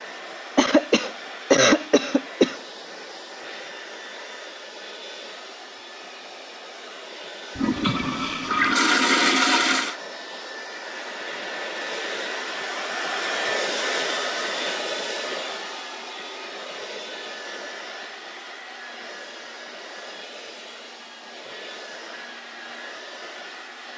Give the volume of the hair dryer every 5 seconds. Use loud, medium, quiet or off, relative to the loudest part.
medium, medium, loud, medium, medium.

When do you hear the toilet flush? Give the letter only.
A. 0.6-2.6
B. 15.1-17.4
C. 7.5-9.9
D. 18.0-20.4
C.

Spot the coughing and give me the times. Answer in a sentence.
You can hear the coughing from 0.6 to 2.6 s.